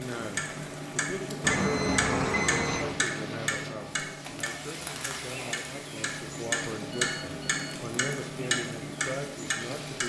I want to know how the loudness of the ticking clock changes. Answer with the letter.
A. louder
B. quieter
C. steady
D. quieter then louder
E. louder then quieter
D.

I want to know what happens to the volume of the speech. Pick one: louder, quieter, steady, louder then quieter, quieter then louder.
quieter then louder.